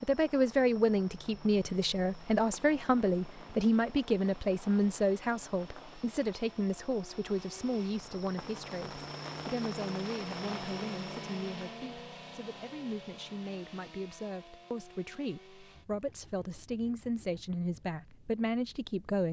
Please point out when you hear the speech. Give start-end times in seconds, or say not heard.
0.0-19.2.